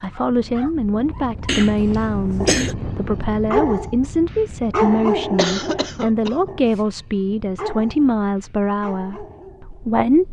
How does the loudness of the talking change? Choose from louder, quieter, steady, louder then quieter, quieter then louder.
steady.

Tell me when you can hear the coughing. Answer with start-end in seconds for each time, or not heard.
1.4-2.8, 5.3-6.5.